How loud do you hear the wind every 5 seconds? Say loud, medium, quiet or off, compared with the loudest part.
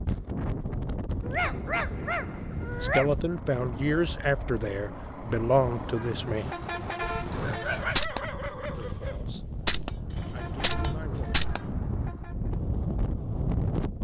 loud, medium, loud.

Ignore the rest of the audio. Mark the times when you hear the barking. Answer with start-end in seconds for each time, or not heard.
1.2-3.1, 7.4-9.2.